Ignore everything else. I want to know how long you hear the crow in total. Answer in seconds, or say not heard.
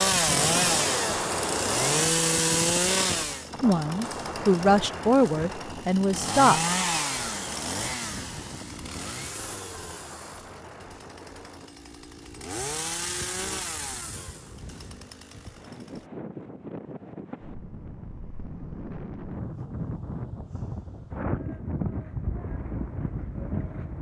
not heard.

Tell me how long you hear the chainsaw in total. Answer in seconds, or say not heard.
16 s.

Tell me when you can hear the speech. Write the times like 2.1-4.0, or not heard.
3.6-6.6.